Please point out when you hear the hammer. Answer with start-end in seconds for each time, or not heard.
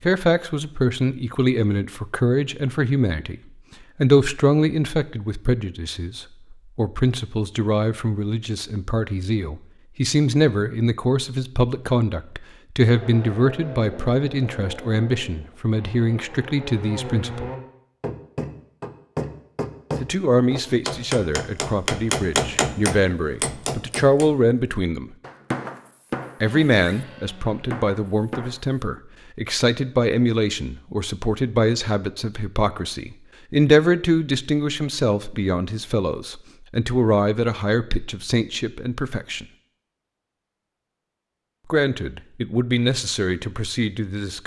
18.0-28.8.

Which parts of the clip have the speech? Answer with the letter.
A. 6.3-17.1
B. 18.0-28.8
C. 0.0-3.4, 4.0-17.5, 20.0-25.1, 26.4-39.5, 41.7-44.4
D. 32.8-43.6
C.